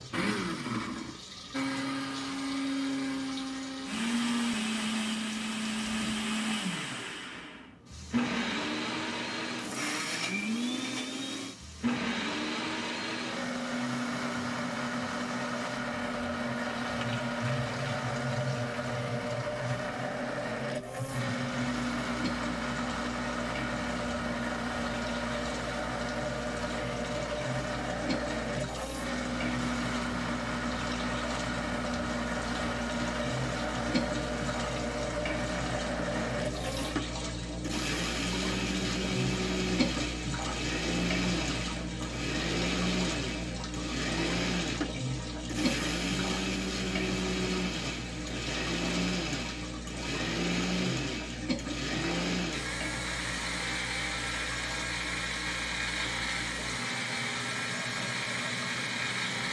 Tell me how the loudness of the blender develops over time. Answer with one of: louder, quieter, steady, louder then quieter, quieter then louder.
steady.